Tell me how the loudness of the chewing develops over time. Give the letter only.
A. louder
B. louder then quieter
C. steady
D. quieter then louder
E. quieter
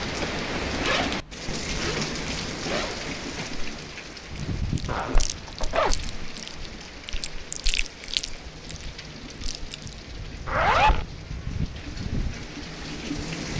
B.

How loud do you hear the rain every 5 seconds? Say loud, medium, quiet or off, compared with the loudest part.
loud, medium, loud.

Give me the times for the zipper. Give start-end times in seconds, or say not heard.
0.7-3.0, 4.8-6.0, 10.4-11.1.